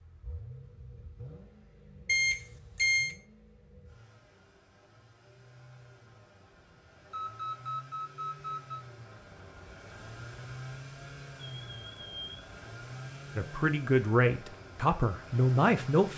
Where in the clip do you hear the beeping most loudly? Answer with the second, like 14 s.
3 s.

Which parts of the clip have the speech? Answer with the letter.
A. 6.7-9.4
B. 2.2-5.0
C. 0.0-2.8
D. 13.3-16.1
D.